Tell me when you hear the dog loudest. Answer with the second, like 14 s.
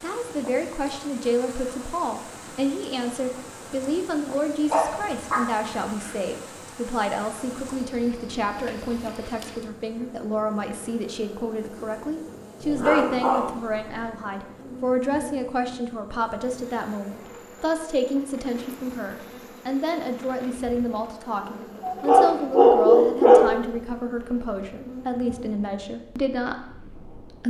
23 s.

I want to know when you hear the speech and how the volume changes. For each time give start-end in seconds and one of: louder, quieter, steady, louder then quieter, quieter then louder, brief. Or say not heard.
0.0-27.4 steady.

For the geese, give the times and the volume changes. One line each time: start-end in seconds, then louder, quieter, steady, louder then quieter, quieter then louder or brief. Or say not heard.
not heard.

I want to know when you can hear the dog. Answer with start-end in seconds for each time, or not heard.
4.7-6.2, 12.6-14.1, 21.9-23.5.